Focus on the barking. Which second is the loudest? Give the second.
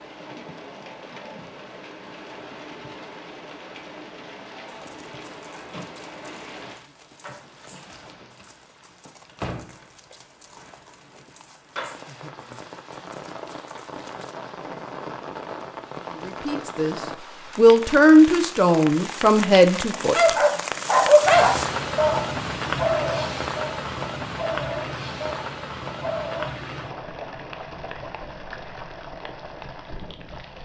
21 s.